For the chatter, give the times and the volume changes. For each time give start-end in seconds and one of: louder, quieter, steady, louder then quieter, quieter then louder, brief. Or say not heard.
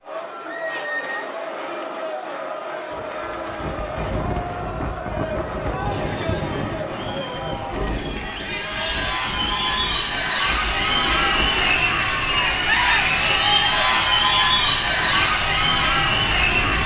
0.0-16.8 louder.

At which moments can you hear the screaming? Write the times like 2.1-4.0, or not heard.
0.4-1.2, 5.7-6.8, 12.8-14.4.